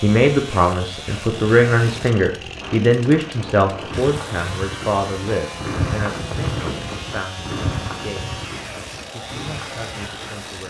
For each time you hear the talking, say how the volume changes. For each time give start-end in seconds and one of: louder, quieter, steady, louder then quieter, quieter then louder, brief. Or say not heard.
0.0-8.2 quieter
9.1-10.6 brief.